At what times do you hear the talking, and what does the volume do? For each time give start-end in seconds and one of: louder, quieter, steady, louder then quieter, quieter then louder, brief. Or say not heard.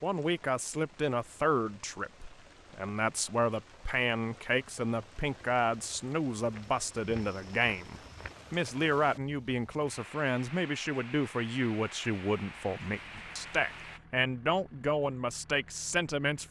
0.0-16.4 steady.